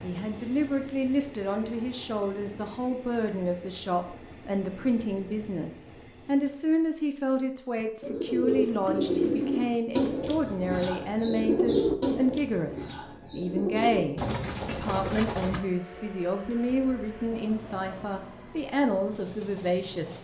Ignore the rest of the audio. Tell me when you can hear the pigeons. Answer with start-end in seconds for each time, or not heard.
7.8-15.7.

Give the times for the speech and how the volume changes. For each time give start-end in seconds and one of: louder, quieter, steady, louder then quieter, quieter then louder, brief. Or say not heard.
0.0-20.1 steady.